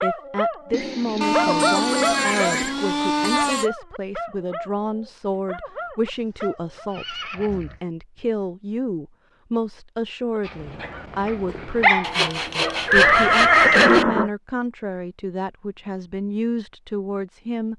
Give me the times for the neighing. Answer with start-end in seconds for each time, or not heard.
0.7-2.8, 6.1-7.8, 12.8-14.3.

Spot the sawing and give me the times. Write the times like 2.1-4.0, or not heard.
1.2-3.7, 12.0-14.1.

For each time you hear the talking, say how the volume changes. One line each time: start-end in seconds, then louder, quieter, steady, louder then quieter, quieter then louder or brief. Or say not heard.
0.0-17.7 steady.